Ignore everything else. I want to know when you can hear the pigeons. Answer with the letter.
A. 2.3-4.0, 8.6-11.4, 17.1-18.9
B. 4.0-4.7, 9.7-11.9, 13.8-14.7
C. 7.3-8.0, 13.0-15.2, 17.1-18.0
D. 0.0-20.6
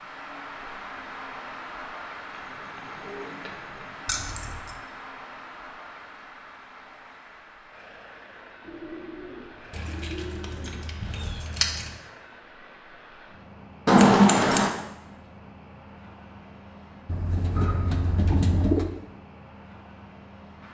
A.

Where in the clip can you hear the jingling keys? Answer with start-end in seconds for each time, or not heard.
4.0-4.7, 9.7-11.9, 13.8-14.7.